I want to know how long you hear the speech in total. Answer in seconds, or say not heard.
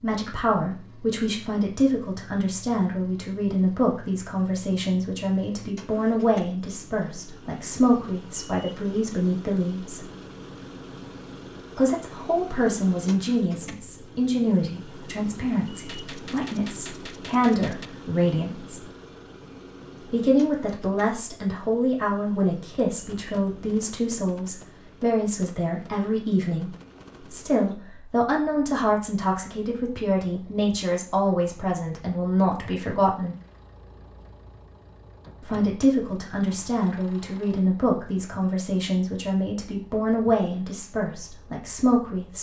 37 s.